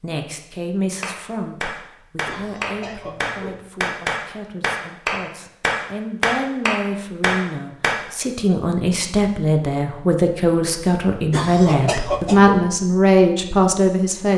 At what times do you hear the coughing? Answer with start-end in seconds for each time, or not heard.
2.2-3.6, 11.3-12.7.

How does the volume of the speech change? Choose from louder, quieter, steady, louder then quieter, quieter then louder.
quieter then louder.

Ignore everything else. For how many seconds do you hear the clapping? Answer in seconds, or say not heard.
7 s.